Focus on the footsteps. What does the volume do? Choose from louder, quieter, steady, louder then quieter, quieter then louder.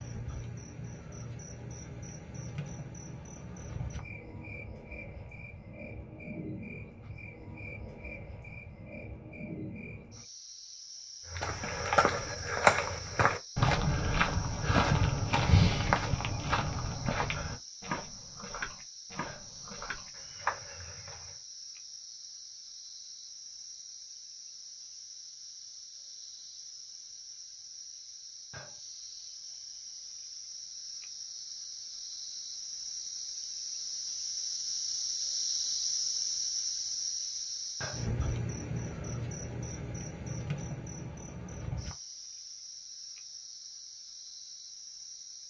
quieter.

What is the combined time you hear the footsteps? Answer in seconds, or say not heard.
10 s.